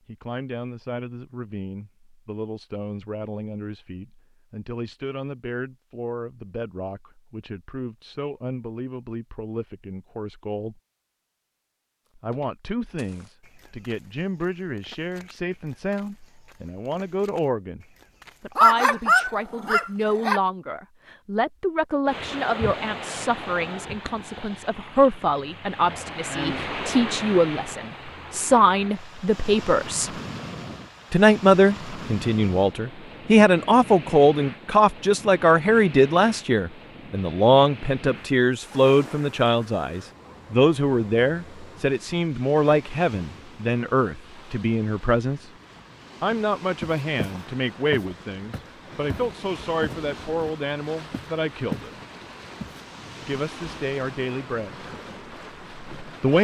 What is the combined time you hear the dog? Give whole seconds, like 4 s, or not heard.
2 s.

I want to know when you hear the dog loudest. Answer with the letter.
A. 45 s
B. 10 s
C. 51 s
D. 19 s
D.